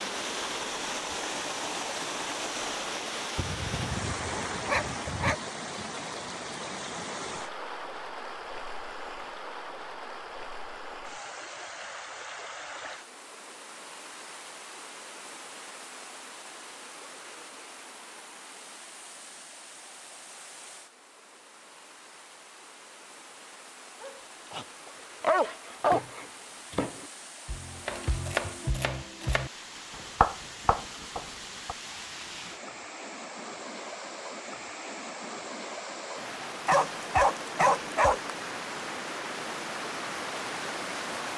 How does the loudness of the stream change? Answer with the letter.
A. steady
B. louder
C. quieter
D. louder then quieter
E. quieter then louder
E.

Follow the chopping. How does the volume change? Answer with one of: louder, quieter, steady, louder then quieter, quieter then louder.
louder then quieter.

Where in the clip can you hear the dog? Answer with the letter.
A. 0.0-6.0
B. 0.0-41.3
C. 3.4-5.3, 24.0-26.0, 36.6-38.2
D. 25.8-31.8
C.